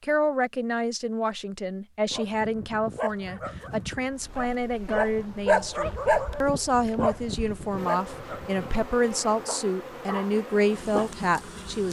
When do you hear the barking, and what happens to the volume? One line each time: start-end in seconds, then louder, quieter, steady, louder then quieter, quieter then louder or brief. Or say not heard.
2.1-11.1 louder then quieter.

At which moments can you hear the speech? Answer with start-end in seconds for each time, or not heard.
0.0-11.8.